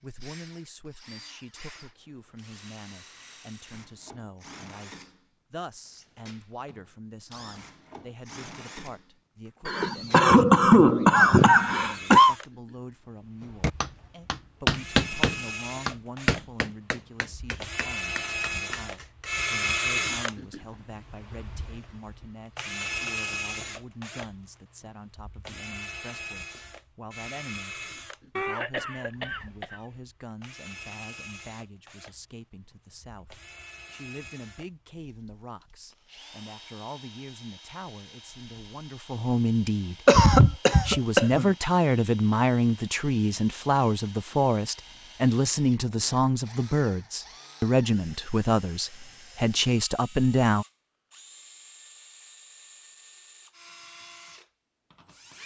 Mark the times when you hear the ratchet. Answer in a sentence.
You can't hear the ratchet here.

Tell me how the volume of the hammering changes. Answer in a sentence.
The loudness of the hammering goes down.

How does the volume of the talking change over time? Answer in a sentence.
The volume of the talking goes up.